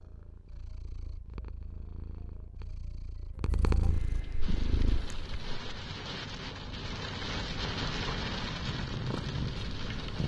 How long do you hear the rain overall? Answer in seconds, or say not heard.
6 s.